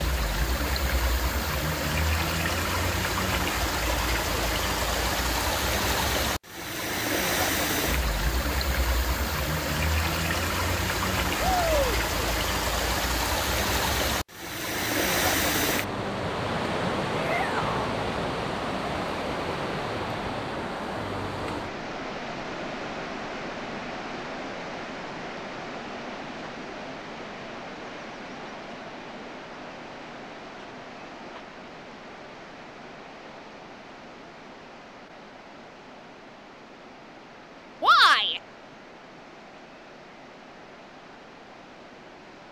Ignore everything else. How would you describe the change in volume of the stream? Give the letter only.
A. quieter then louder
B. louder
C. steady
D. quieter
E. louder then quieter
D.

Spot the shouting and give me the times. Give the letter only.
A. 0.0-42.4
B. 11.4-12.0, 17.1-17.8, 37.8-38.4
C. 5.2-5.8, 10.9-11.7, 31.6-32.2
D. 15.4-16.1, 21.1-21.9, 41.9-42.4
B.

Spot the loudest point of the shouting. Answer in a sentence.
The loudest moment of the shouting is at 38 seconds.